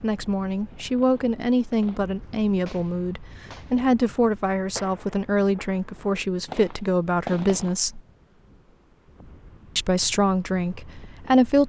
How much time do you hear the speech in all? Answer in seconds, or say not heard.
10 s.